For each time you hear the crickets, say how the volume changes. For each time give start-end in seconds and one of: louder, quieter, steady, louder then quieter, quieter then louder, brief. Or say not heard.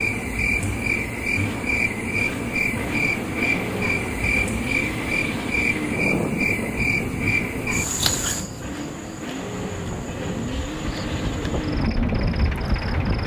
0.0-13.2 quieter.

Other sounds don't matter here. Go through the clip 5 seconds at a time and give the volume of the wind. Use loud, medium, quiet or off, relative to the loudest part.
off, loud, loud.